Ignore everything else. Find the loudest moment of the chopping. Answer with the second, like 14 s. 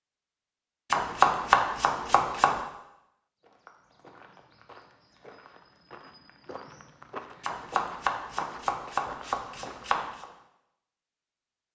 1 s.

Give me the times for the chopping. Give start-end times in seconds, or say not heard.
0.9-2.6, 7.4-10.2.